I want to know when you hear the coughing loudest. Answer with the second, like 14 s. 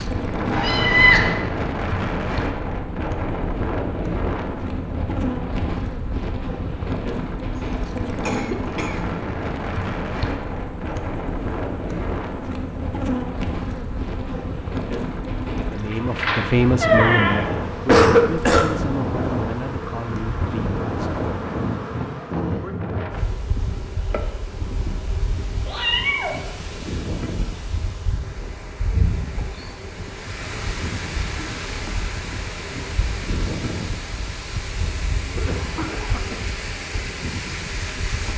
18 s.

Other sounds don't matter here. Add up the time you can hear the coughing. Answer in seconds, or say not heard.
3 s.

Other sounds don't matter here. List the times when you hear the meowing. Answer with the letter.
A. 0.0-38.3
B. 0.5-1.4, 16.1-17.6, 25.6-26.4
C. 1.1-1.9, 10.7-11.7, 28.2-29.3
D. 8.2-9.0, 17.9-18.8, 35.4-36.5
B.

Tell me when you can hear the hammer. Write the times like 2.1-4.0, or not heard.
not heard.